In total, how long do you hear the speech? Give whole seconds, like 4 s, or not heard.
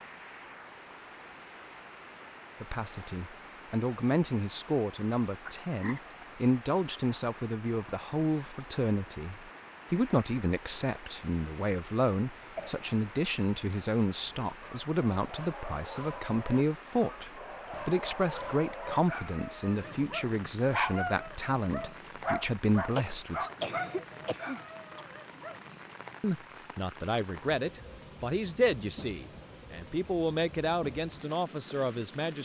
27 s.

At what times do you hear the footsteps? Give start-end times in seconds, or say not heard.
not heard.